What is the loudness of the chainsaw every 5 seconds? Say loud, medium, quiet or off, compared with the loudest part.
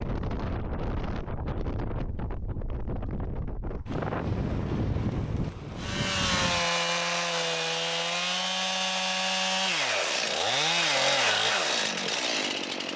off, loud, loud.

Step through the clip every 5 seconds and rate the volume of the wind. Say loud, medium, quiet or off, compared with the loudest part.
loud, loud, off.